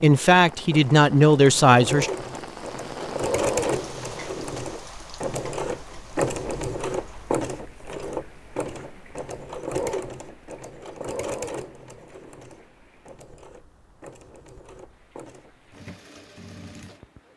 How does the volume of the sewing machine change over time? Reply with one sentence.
The volume of the sewing machine goes down.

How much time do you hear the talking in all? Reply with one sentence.
You can hear the talking for 2 seconds altogether.